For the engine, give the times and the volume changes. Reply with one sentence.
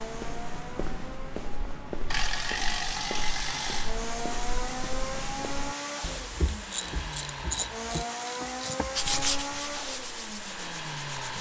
You can hear the engine from 0.0 to 11.3 s, getting louder.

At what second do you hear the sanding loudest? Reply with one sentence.
The loudest moment of the sanding is at 9 seconds.